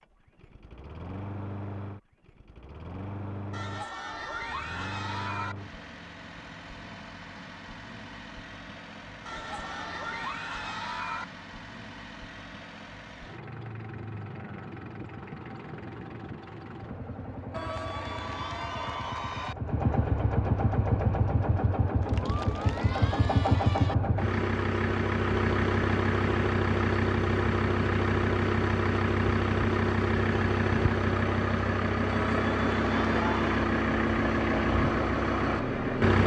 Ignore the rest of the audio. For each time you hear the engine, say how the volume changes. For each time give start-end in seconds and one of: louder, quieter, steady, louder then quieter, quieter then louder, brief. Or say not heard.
0.0-36.2 louder.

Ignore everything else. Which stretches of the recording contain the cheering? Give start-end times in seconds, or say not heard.
3.5-5.5, 9.2-11.2, 17.5-19.6, 22.0-23.9, 32.1-33.7.